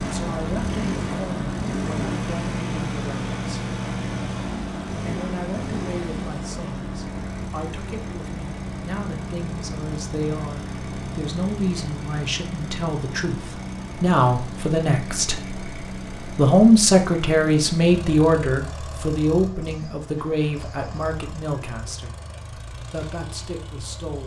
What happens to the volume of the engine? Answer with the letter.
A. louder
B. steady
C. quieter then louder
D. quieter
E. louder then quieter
D.